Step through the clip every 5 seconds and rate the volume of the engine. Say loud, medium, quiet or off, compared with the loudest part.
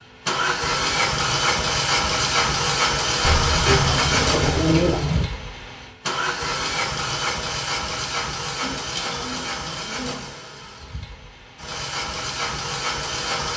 loud, medium, medium.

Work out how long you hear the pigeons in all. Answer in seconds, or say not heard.
4 s.